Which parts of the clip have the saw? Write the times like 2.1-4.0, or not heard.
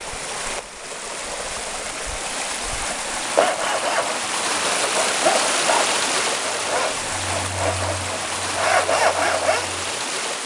3.3-10.1.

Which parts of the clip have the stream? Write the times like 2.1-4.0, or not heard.
0.0-10.4.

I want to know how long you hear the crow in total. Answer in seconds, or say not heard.
not heard.